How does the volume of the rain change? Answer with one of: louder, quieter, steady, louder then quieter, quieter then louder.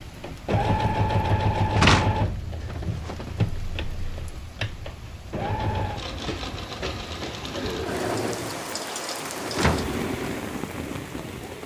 louder.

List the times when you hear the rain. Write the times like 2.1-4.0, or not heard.
0.0-11.6.